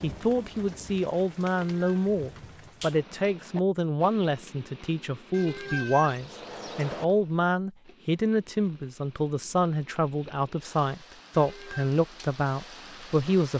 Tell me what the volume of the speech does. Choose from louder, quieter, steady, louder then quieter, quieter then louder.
steady.